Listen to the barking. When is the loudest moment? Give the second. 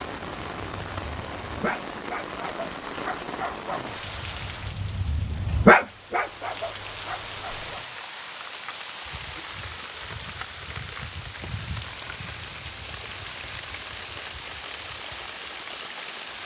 6 s.